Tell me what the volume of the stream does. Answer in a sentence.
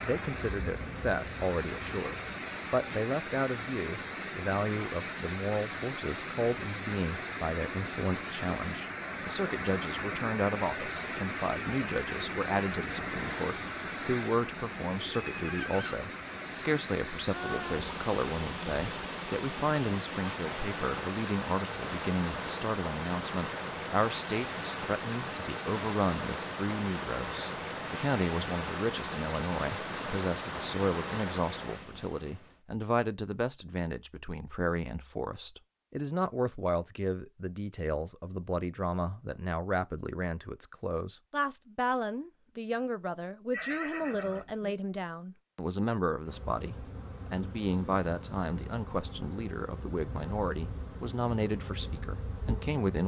The volume of the stream stays about the same.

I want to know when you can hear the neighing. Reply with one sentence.
The neighing can be heard from 15.2 to 16.0 s and from 43.5 to 44.8 s.